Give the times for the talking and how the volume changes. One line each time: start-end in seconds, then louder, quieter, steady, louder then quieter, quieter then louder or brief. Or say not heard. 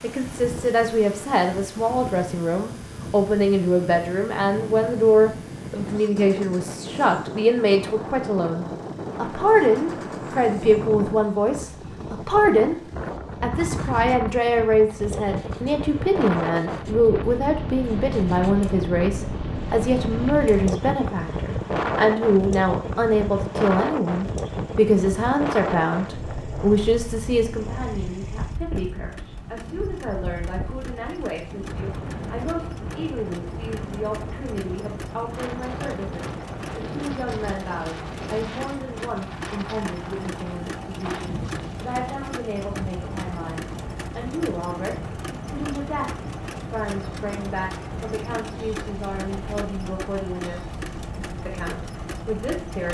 0.0-52.8 quieter.